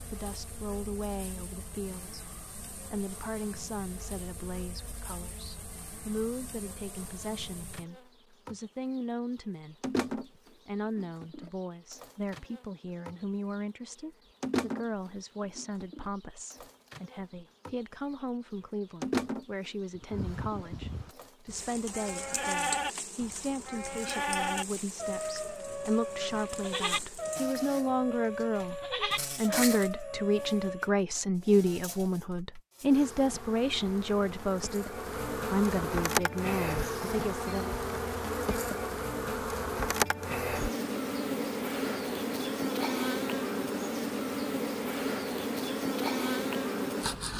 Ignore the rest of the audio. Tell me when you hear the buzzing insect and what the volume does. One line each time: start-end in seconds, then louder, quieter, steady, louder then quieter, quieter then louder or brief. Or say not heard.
0.0-47.3 louder.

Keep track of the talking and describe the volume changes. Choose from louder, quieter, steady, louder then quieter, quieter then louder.
louder.